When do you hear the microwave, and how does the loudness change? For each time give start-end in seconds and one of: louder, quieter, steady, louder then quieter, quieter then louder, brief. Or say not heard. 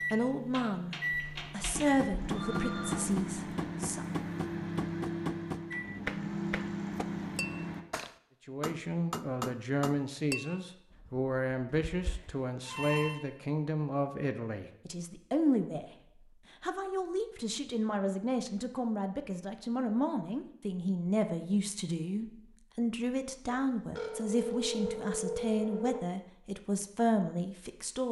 0.0-7.8 steady.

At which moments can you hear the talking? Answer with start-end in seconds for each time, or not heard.
0.1-4.0, 8.4-15.8, 16.6-28.0.